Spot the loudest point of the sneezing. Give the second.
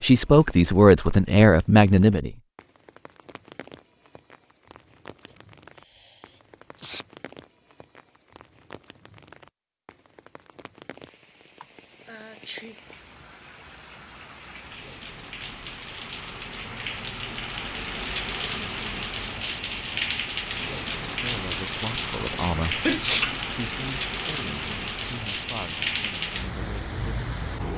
23 s.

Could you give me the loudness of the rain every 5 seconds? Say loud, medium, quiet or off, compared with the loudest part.
quiet, quiet, quiet, loud, loud, loud.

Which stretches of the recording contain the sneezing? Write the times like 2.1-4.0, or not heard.
5.2-7.0, 11.6-13.2, 22.3-23.4.